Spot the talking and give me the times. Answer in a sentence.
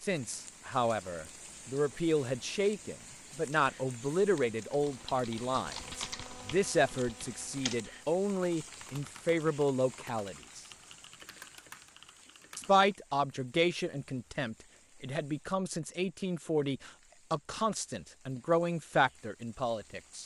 The talking can be heard from 0.0 to 10.6 s and from 12.6 to 20.2 s.